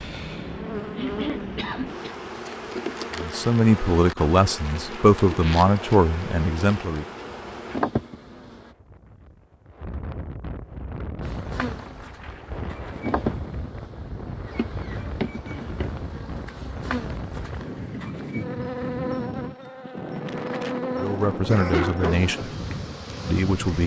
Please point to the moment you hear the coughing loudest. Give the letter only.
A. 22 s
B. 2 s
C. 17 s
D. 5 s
A.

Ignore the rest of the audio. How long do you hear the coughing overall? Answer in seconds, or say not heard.
2 s.